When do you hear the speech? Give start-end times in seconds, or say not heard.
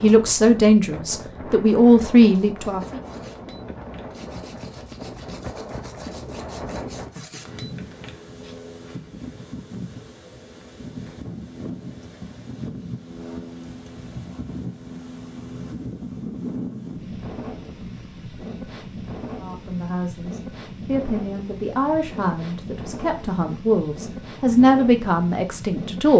0.0-3.0, 19.4-26.1.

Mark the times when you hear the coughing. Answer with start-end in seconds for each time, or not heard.
not heard.